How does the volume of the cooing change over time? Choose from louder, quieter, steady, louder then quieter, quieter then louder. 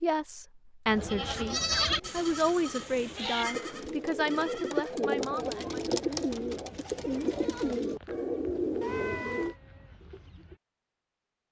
louder.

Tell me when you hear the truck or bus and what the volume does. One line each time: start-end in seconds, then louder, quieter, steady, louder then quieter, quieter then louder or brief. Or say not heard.
not heard.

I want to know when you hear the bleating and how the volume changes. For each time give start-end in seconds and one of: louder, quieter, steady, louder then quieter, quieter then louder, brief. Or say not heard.
0.8-10.6 quieter.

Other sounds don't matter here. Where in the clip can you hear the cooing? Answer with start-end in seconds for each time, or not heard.
0.8-9.6.